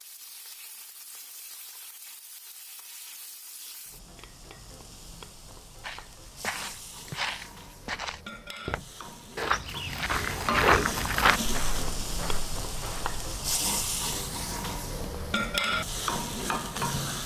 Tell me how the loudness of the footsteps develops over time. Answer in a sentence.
The loudness of the footsteps goes up, then down.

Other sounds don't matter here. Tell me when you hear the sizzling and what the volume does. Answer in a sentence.
The sizzling can be heard from 0.0 to 17.2 s, getting louder.